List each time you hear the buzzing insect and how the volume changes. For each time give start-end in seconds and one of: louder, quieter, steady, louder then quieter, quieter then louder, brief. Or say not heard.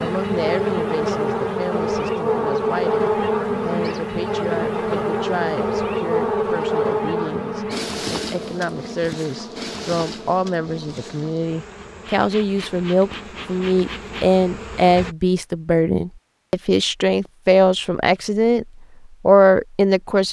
0.0-15.2 quieter.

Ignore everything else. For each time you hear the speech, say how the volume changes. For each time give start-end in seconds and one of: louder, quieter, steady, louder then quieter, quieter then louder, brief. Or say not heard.
0.0-18.6 louder
19.2-20.2 brief.